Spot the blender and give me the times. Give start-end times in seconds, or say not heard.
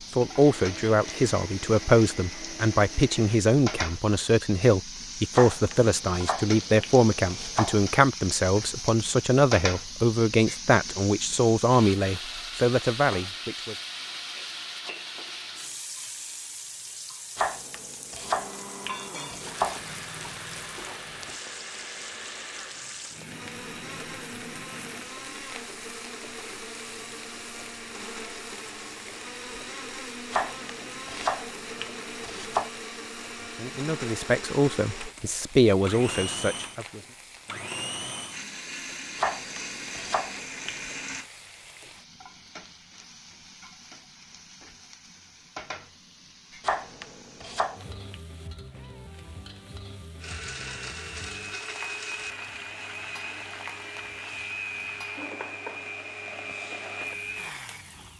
0.0-3.5, 18.2-41.3, 50.2-58.1.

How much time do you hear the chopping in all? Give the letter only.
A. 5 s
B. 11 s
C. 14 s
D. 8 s
B.